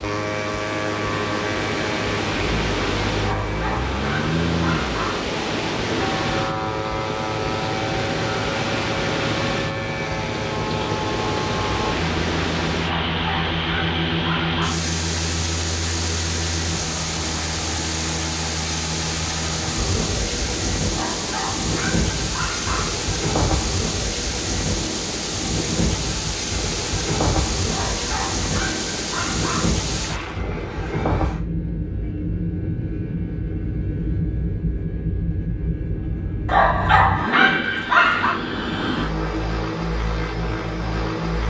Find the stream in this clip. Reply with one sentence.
You can hear the stream from 0.0 to 30.4 s.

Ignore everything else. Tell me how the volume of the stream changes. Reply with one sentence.
The volume of the stream stays about the same.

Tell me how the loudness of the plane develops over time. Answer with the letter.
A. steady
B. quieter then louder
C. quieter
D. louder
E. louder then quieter
A.